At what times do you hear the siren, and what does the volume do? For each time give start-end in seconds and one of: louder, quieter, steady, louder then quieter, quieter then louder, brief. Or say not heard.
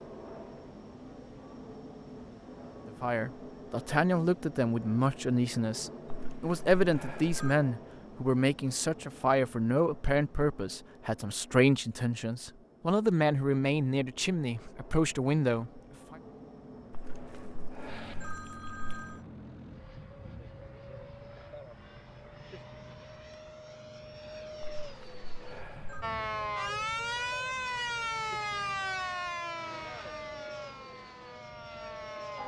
26.0-32.4 quieter.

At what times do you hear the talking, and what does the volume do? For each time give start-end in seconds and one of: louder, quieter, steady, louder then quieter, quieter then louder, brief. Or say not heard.
2.9-16.1 steady.